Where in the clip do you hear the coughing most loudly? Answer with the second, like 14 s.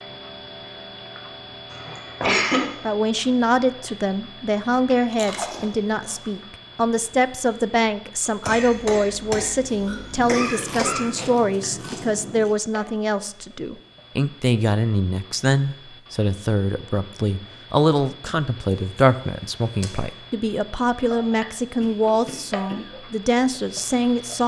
2 s.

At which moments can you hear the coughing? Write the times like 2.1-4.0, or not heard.
1.7-2.6, 8.4-11.1, 21.8-22.9.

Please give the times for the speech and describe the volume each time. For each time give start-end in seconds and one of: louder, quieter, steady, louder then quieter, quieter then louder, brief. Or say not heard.
2.8-24.4 steady.